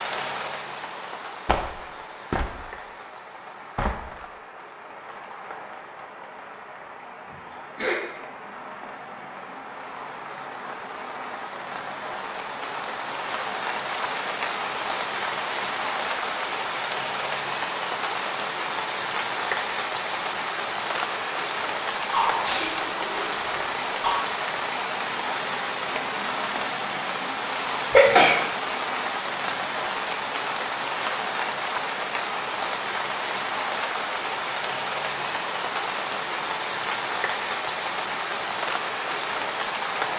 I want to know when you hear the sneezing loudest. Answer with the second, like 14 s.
28 s.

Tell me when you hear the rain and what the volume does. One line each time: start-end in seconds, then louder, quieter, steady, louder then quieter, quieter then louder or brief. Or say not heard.
0.0-40.1 louder.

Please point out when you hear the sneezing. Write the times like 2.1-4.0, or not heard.
7.3-8.0, 22.1-24.1, 27.9-28.4.